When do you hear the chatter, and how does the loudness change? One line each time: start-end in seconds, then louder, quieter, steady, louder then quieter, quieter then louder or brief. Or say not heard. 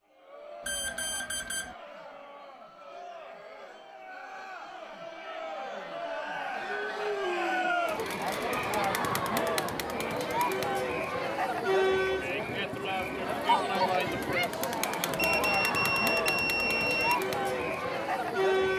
0.1-18.7 louder.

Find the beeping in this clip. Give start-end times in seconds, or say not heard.
0.7-1.8, 15.2-17.1.